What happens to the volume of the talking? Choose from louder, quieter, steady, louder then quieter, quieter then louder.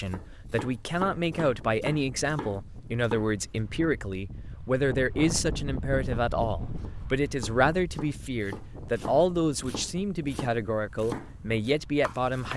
steady.